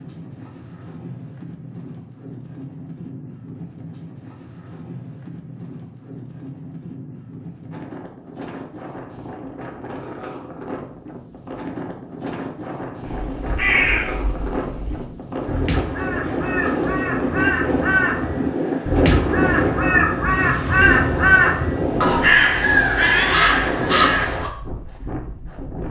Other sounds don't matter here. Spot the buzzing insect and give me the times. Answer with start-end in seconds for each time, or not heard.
not heard.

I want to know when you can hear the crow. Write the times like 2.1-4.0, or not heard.
13.1-24.5.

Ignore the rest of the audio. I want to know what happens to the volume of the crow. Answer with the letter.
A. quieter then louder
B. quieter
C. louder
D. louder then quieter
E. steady
C.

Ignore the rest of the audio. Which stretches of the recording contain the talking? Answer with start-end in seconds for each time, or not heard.
not heard.